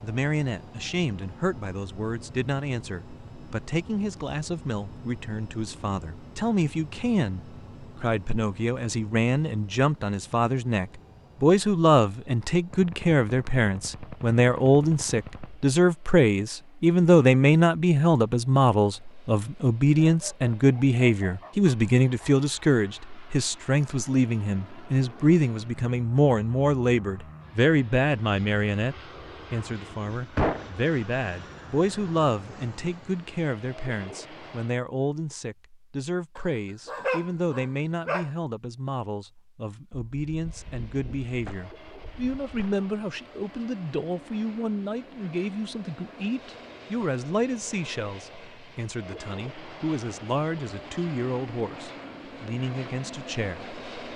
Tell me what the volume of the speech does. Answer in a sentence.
The loudness of the speech goes up, then down.